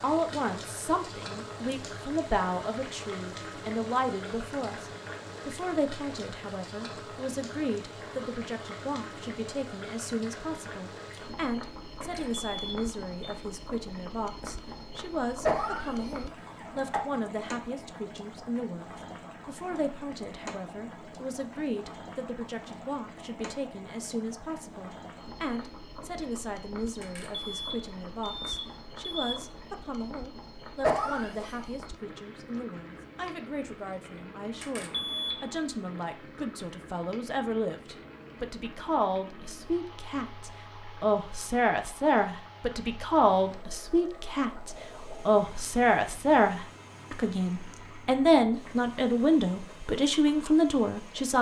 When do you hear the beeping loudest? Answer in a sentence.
The loudest moment of the beeping is at 35 seconds.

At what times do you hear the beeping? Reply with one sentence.
You can hear the beeping from 12.0 to 13.3 s, from 27.0 to 29.4 s and from 34.6 to 35.4 s.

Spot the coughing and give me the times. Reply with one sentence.
You can hear the coughing from 15.4 to 17.2 s and from 30.8 to 31.7 s.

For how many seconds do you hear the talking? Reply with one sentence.
The talking can be heard for 51 seconds in total.